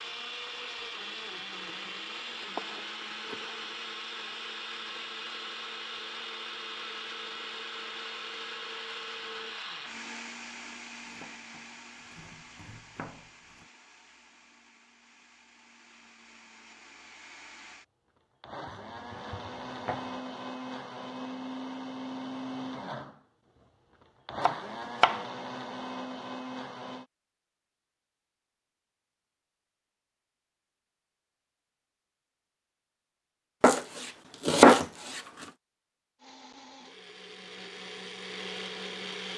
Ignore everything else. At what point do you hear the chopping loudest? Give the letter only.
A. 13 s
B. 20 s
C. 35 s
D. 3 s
C.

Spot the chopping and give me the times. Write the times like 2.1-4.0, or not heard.
2.4-3.6, 10.9-13.7, 18.6-20.1, 24.4-25.2, 33.6-35.5.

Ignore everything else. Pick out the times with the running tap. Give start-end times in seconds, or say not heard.
not heard.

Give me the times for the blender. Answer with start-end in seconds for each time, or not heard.
0.0-27.1, 36.1-39.3.